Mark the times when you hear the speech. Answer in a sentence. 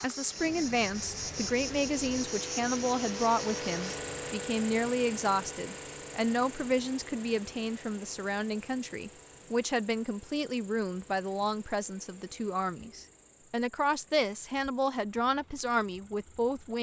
The speech can be heard from 0.0 to 16.7 s.